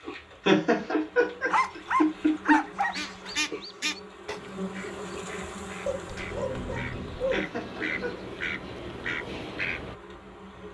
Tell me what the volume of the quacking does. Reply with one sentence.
The loudness of the quacking goes down, then up.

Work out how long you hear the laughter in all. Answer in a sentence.
You can hear the laughter for 3 seconds altogether.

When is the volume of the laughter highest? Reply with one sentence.
The loudest moment of the laughter is at 1 second.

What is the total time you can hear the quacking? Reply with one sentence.
You can hear the quacking for 7 seconds altogether.